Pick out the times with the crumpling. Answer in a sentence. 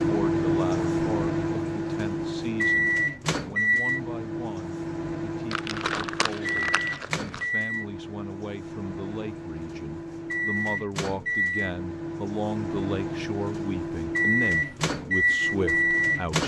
You can hear the crumpling from 5.5 to 7.5 s.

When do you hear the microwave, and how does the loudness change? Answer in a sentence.
The microwave can be heard from 0.0 to 16.4 s, getting quieter then louder.